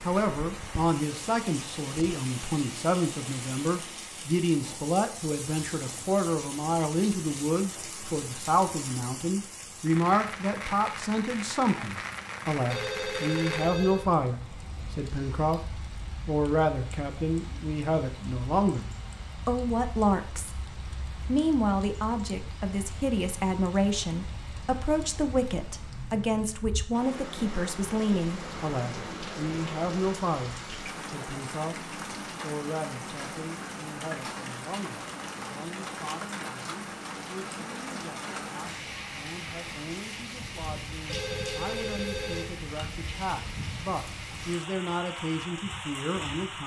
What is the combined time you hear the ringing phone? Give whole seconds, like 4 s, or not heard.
3 s.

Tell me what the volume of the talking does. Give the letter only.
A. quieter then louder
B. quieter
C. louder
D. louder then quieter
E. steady
B.